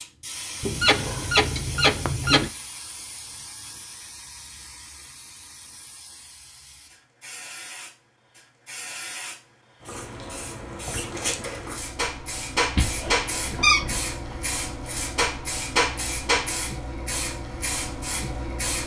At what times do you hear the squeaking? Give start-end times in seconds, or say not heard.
0.6-2.5, 12.8-14.3.